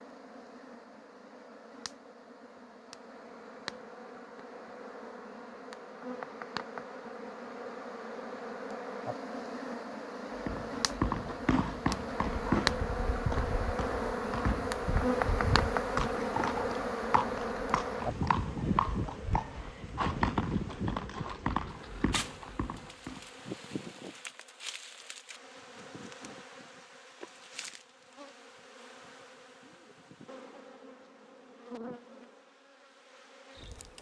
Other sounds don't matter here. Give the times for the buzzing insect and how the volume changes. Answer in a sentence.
The buzzing insect can be heard from 0.0 to 33.9 s, getting louder then quieter.